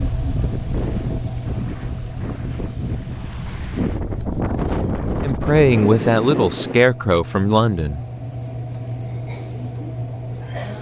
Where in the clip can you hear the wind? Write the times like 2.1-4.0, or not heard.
0.0-6.8.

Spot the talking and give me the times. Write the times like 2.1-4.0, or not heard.
5.2-8.0.